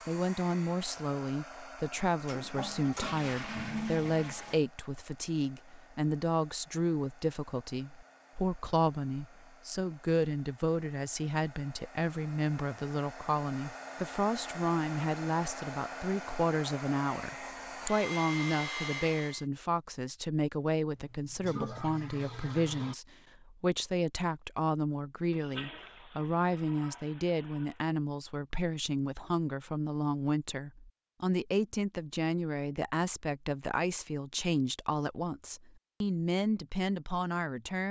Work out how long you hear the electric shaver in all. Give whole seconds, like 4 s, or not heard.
not heard.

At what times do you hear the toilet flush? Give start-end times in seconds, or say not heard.
2.2-4.6, 20.9-22.9, 25.3-27.8.